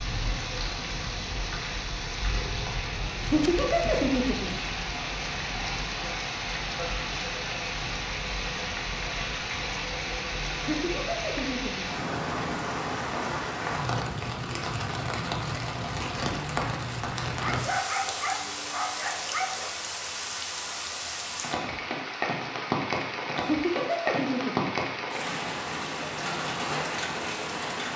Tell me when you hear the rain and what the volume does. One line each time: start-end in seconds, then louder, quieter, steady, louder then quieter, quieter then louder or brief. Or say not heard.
0.0-27.9 steady.